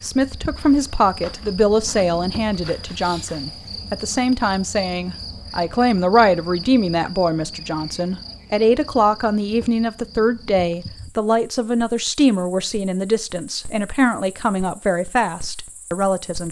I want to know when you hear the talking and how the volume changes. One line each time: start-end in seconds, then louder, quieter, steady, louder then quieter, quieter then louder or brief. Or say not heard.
0.0-16.4 steady.